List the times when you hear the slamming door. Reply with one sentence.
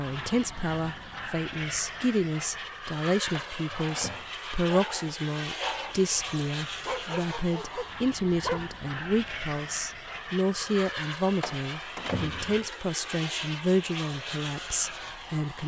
You can hear the slamming door from 3.3 to 4.3 s and from 11.4 to 12.7 s.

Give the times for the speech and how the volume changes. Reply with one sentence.
The speech can be heard from 0.0 to 15.6 s, at a steady volume.